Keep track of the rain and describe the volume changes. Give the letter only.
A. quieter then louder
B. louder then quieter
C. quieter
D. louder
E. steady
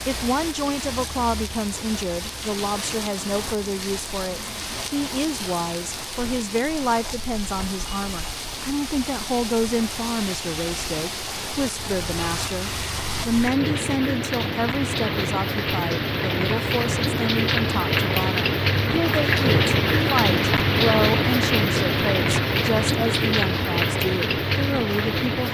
D.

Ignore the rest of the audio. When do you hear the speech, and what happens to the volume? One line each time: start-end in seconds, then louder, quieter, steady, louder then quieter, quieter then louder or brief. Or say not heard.
0.1-25.4 steady.